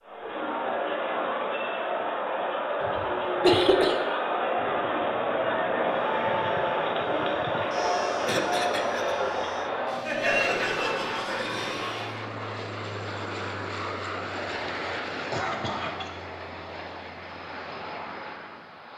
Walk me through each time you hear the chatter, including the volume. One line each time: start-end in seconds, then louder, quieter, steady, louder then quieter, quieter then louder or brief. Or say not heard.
0.0-12.2 steady.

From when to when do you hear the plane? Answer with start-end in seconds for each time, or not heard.
4.5-18.9.